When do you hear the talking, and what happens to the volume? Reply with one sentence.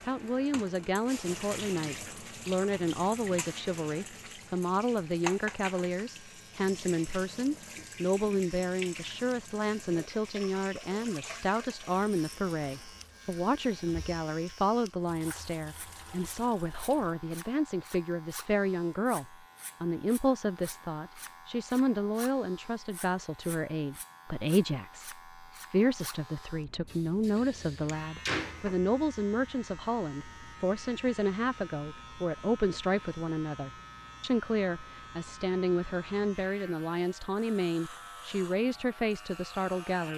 The talking can be heard from 0.0 to 40.1 s, at a steady volume.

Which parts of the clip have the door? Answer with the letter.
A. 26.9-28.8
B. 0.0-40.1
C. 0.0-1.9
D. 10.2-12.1
A.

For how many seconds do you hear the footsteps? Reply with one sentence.
The footsteps can't be heard in this clip.